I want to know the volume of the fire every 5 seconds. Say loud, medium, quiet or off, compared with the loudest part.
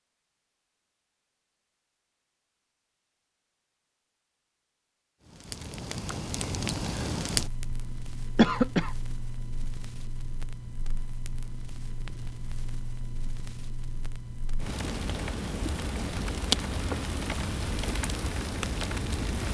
off, loud, medium, loud.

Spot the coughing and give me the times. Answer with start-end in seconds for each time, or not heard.
8.3-8.9.